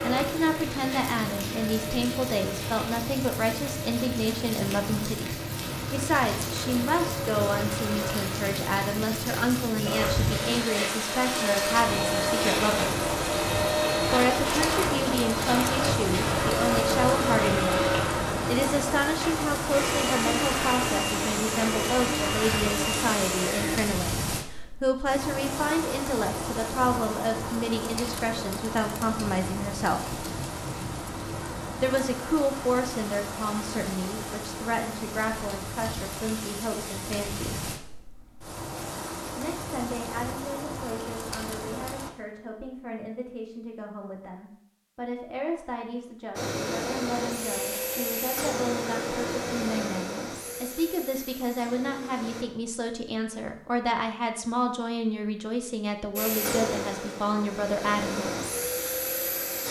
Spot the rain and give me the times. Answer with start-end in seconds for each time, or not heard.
0.0-42.1.